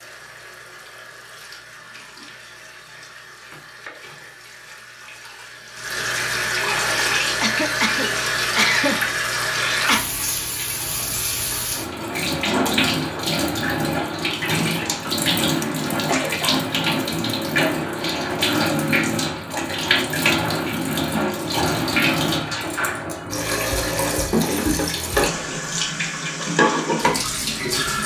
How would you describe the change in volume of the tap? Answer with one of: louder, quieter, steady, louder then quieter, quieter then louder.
louder.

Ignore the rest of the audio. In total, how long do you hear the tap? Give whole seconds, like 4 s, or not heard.
28 s.